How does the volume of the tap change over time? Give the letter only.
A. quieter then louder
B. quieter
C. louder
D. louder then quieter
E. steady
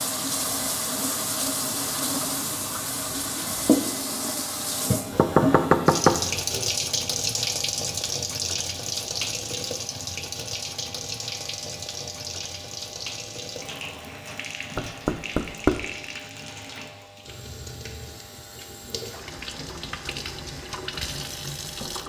B.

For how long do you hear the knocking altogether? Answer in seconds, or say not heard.
3 s.